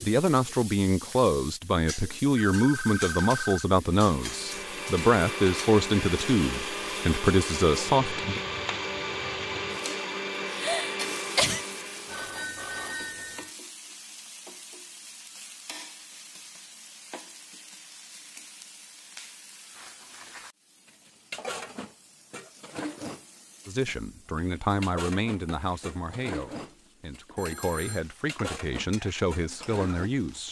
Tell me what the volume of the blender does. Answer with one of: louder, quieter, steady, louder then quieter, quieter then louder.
steady.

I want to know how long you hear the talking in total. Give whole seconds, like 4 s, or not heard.
15 s.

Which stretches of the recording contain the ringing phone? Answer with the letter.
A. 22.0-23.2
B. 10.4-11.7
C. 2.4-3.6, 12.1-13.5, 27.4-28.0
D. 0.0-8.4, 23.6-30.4
C.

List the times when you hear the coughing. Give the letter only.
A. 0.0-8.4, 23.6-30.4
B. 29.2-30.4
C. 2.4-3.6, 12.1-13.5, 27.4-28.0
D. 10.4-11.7
D.